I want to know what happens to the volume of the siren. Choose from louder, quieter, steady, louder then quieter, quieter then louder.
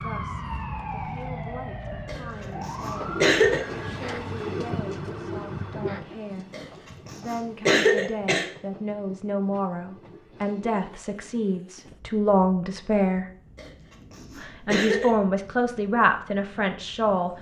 quieter.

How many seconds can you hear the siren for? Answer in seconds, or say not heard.
6 s.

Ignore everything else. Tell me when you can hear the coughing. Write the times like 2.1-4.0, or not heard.
2.0-3.6, 6.5-8.4, 13.6-15.1.